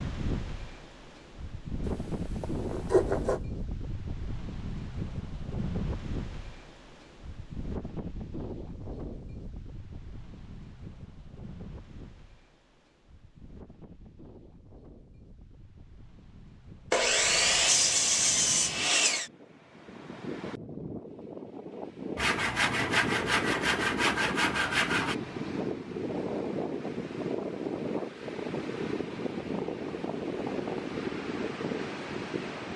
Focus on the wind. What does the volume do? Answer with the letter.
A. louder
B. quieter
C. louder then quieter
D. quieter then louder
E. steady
D.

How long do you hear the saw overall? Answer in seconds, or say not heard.
7 s.